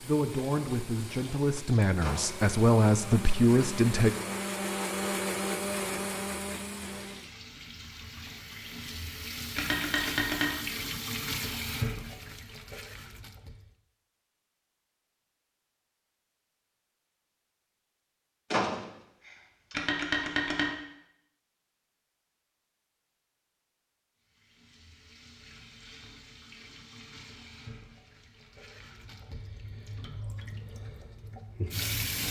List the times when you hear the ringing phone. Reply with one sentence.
The ringing phone can be heard from 9.6 to 10.5 s and from 19.7 to 20.7 s.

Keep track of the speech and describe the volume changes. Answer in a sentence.
The loudness of the speech goes up.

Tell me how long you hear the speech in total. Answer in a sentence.
You can hear the speech for 4 seconds altogether.